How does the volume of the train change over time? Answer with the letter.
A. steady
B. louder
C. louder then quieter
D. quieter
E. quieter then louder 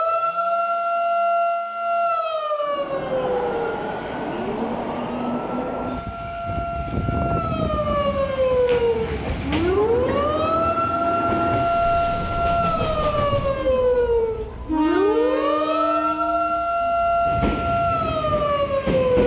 A.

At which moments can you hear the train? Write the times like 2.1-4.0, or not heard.
2.6-19.2.